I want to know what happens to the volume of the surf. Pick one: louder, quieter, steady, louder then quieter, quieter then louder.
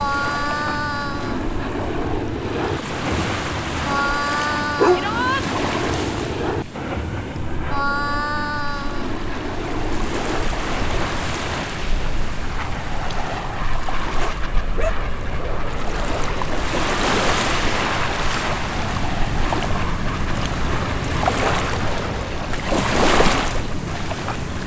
louder.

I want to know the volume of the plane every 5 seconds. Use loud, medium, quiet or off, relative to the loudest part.
loud, loud, medium, medium, medium.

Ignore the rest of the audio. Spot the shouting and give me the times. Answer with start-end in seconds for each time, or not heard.
4.9-5.5.